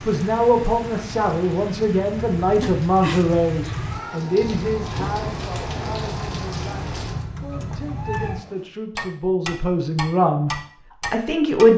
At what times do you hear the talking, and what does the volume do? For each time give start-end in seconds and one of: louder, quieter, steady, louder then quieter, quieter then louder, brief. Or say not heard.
0.1-10.5 quieter then louder
11.1-11.7 brief.